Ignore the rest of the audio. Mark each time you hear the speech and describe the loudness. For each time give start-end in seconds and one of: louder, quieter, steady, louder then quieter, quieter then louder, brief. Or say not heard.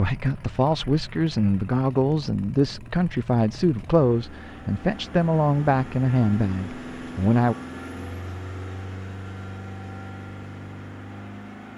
0.0-7.5 steady.